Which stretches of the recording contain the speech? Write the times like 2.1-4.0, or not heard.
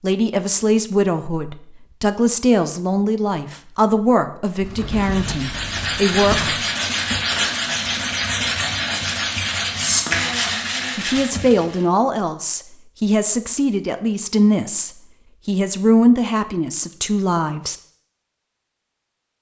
0.0-6.5, 10.9-17.8.